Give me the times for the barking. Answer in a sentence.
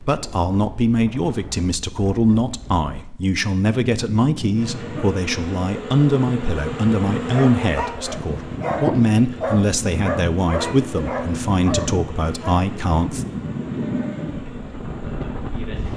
The barking can be heard from 7.3 to 12.6 s.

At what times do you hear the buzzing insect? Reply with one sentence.
You can hear the buzzing insect from 4.5 to 15.9 s.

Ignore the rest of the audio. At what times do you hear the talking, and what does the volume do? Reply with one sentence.
You can hear the talking from 0.0 to 13.2 s, at a steady volume.